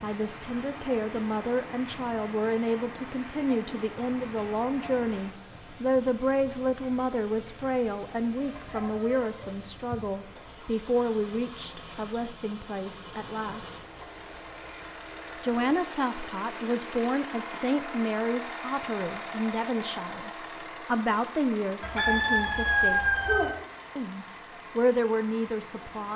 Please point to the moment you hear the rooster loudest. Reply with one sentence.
The volume of the rooster peaks at 23 seconds.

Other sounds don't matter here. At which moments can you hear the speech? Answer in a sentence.
You can hear the speech from 0.0 to 13.8 s, from 15.4 to 23.1 s and from 23.9 to 26.1 s.